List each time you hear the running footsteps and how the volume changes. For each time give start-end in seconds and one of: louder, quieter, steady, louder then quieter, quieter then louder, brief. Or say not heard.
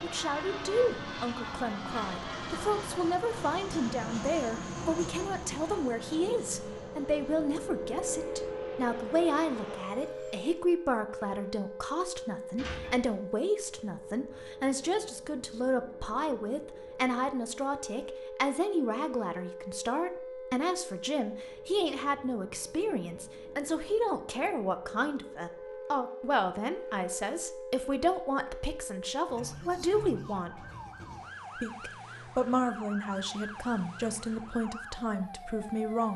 not heard.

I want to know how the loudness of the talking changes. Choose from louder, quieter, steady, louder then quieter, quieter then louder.
steady.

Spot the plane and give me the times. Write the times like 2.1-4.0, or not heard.
0.0-10.7.